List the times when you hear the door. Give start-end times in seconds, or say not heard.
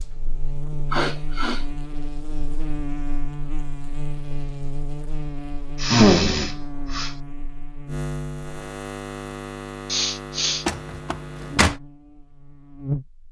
10.7-11.8.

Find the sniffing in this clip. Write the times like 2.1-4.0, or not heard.
0.9-1.6, 5.8-7.1, 9.8-10.7.